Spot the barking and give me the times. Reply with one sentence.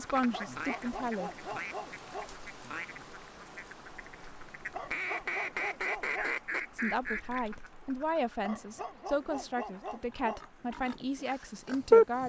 You can hear the barking from 0.3 to 2.3 s, from 4.7 to 6.3 s and from 8.4 to 10.5 s.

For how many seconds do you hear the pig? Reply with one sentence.
The pig can be heard for 3 seconds in total.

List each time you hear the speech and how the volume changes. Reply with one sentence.
The speech can be heard briefly from 0.0 to 1.3 s; and from 6.8 to 12.2 s, at a steady volume.